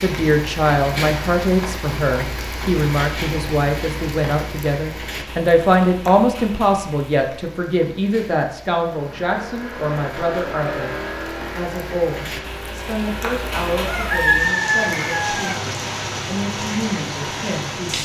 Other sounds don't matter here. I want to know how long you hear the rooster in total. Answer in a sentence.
You can hear the rooster for 2 seconds altogether.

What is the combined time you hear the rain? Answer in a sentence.
The rain can be heard for 18 seconds in total.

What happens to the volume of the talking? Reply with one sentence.
The loudness of the talking goes down.